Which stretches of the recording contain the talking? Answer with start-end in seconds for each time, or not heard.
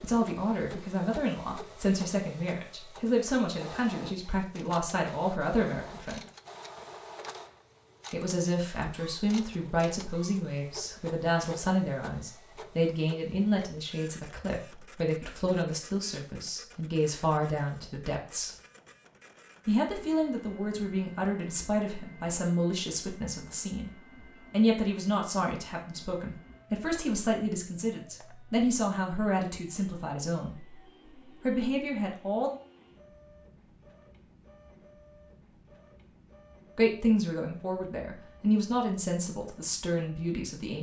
0.0-6.2, 8.1-18.6, 19.6-23.9, 24.5-32.5, 36.8-40.7.